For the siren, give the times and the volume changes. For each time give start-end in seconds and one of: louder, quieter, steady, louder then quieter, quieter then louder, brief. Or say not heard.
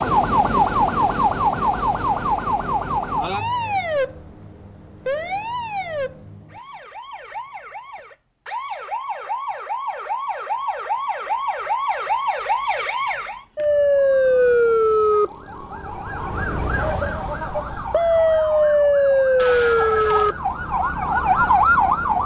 0.0-22.2 quieter then louder.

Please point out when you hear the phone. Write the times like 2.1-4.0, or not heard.
19.4-20.4.